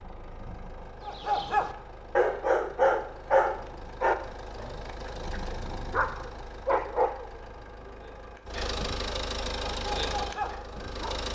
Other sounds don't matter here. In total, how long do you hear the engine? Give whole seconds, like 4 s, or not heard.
11 s.